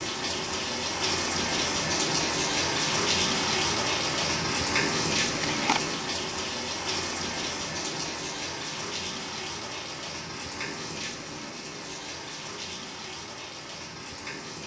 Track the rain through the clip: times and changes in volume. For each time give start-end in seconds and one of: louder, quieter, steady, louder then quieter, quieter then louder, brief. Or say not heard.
0.0-14.6 quieter.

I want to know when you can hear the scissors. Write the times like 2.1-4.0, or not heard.
5.3-5.8.